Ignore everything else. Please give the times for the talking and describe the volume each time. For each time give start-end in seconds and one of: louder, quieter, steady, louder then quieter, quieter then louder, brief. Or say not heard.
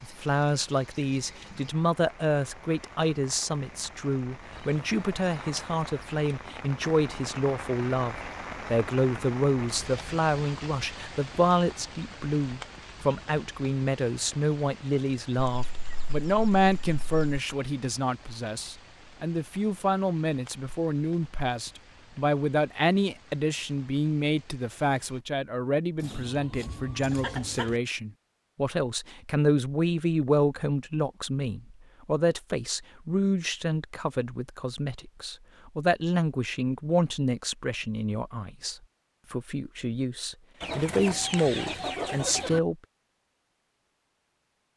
0.0-42.8 steady.